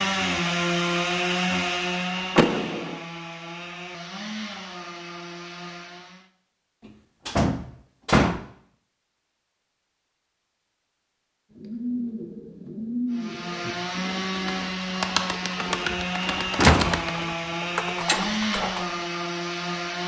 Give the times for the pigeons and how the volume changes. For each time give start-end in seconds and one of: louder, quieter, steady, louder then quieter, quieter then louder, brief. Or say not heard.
11.6-18.9 quieter then louder.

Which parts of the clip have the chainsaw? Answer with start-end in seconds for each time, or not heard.
0.0-6.3, 13.1-20.0.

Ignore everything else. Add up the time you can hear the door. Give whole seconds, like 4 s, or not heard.
3 s.